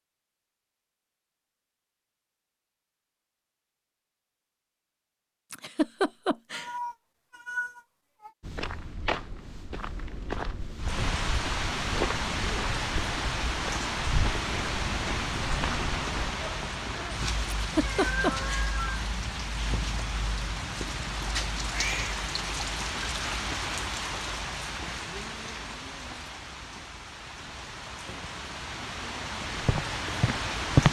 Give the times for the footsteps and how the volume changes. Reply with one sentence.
The footsteps can be heard from 8.4 to 16.4 s, at a steady volume; and briefly from 29.6 to 30.8 s.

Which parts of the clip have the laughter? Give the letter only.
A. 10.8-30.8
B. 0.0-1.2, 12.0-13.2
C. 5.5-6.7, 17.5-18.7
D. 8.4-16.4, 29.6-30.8
C.